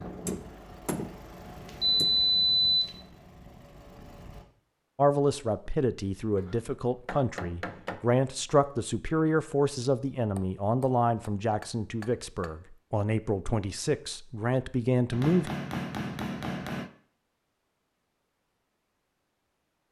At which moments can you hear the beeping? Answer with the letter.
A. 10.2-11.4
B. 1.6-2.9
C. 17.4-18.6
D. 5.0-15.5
B.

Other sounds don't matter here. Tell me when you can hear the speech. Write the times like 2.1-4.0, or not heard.
5.0-15.5.